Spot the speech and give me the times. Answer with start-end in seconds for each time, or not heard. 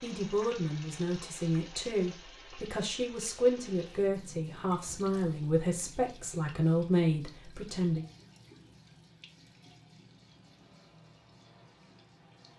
0.0-8.1.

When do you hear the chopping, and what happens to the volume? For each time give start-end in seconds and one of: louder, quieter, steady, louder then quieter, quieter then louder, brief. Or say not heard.
not heard.